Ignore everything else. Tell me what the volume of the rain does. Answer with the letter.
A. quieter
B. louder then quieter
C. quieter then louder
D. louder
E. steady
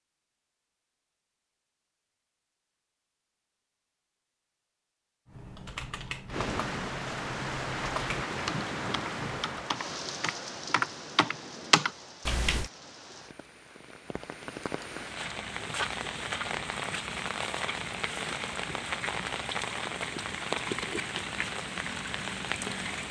C.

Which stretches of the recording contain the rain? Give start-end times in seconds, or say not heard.
6.3-23.0.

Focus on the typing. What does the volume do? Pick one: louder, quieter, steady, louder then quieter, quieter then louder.
louder.